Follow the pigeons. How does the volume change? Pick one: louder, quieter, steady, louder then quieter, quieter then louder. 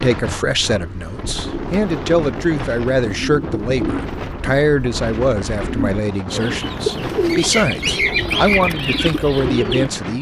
louder.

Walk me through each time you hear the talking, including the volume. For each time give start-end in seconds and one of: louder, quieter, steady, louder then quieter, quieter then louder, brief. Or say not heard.
0.0-10.1 steady.